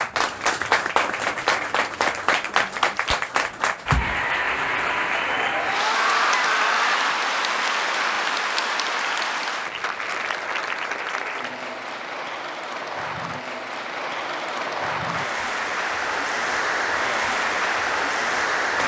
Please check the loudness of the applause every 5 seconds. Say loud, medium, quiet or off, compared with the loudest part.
loud, loud, medium, loud.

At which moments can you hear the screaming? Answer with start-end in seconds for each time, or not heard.
5.5-7.0.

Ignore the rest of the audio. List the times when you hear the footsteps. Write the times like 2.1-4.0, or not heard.
not heard.